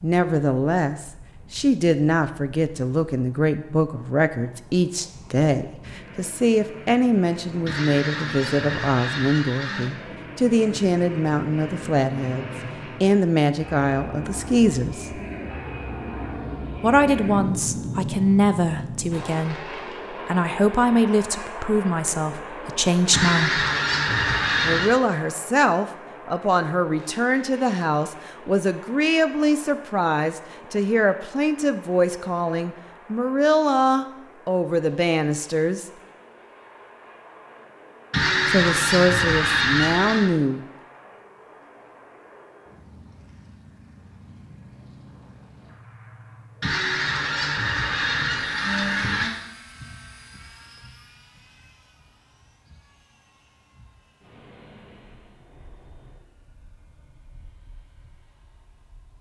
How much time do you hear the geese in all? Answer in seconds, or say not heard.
9 s.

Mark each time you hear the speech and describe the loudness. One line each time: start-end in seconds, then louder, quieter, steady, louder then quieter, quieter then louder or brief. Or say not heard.
0.0-15.2 steady
16.8-23.6 steady
24.6-35.9 steady
38.5-40.6 brief.